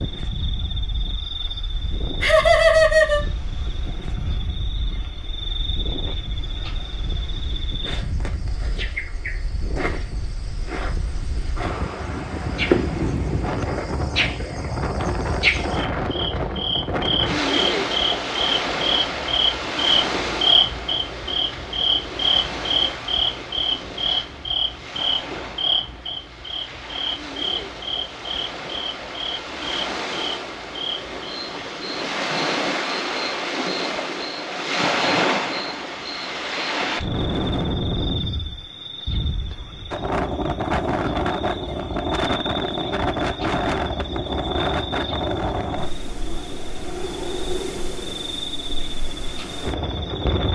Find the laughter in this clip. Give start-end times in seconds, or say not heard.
2.2-3.2.